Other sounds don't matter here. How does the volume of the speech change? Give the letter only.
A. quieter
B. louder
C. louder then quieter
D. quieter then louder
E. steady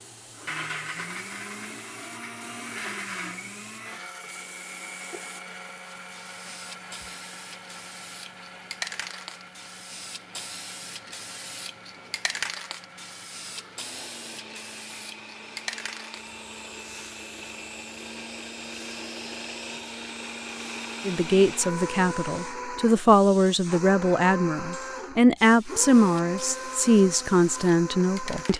B.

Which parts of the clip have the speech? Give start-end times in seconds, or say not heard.
21.1-28.5.